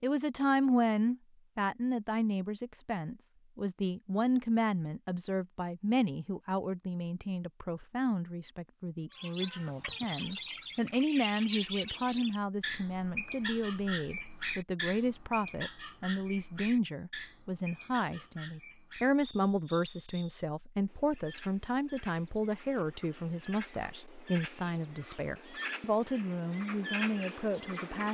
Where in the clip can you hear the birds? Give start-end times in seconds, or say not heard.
9.1-28.0.